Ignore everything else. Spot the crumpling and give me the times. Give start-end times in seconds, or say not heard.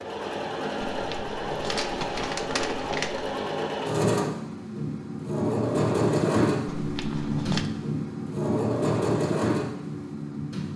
0.9-3.4, 6.7-7.7.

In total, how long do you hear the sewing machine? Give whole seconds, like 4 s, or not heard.
11 s.